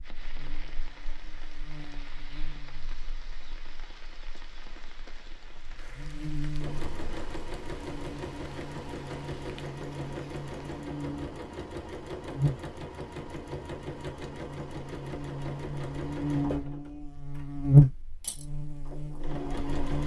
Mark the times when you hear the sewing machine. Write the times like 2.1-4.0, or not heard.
6.6-20.0.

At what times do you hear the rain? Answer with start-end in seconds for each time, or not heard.
0.0-10.8.